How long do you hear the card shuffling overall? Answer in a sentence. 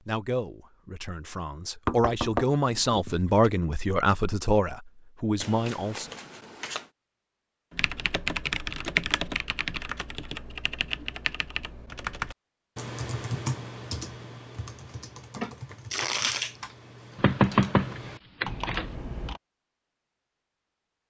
The card shuffling can be heard for 3 seconds in total.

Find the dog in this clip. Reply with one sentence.
You can't hear the dog here.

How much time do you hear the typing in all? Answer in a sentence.
The typing can be heard for 12 seconds in total.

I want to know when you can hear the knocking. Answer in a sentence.
The knocking can be heard from 1.9 to 3.5 s and from 17.1 to 18.9 s.